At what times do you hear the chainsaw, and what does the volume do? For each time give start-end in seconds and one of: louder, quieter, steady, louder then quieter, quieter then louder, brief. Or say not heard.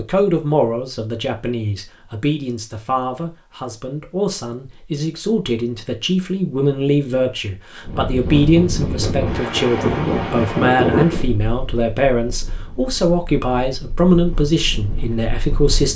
not heard.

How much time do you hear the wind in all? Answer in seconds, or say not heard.
8 s.